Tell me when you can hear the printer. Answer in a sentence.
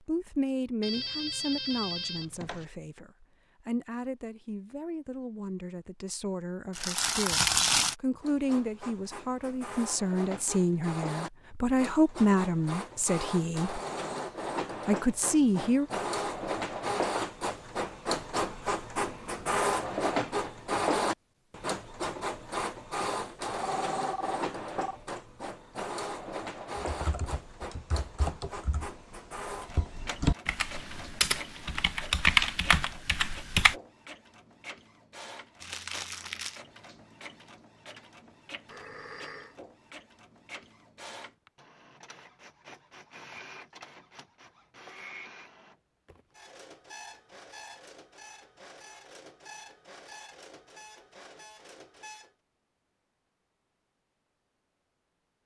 You can hear the printer from 8.2 to 52.4 s.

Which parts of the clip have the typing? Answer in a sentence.
You can hear the typing from 26.8 to 33.8 s.